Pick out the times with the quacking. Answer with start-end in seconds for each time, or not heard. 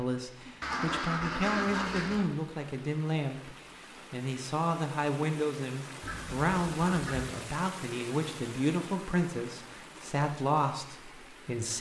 0.6-2.3, 6.0-7.3.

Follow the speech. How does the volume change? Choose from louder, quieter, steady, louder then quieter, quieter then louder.
steady.